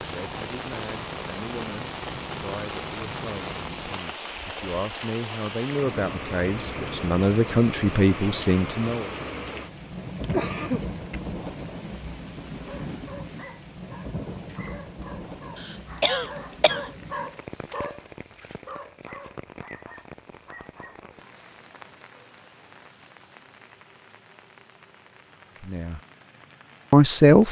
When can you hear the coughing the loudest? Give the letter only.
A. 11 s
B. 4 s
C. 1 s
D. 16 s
D.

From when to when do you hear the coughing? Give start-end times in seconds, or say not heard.
10.2-11.0, 15.6-16.9.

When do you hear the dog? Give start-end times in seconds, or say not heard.
12.6-21.0.